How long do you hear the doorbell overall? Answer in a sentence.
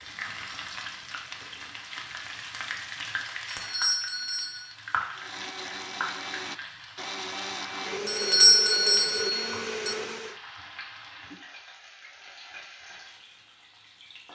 You can hear the doorbell for 3 seconds altogether.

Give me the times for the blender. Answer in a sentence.
The blender can be heard from 5.1 to 10.3 s.